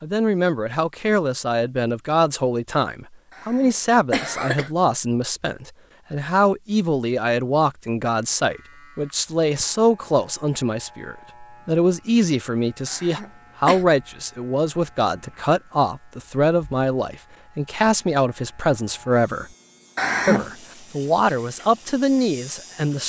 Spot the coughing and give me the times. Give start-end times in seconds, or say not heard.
3.3-4.7, 12.8-13.8, 19.9-20.6.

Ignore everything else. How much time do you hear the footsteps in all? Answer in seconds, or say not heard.
not heard.